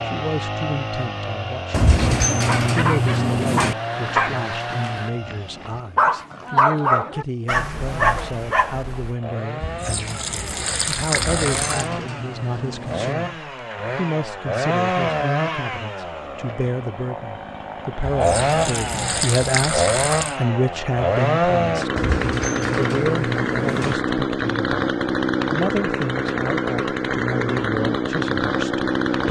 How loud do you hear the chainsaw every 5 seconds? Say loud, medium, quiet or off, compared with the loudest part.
medium, quiet, medium, loud, loud, loud.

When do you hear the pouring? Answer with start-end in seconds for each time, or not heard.
9.6-11.9, 18.0-20.4.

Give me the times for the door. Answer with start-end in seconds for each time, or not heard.
1.7-3.8, 11.1-13.2, 21.9-23.9.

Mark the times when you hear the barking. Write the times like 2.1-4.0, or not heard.
2.4-9.2.